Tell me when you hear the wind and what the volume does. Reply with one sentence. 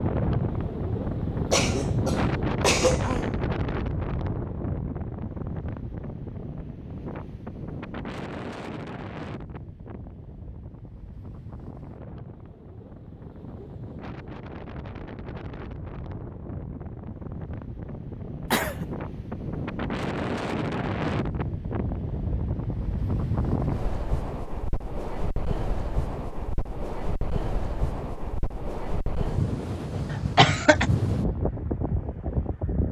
The wind can be heard from 0.0 to 32.8 s, getting quieter then louder.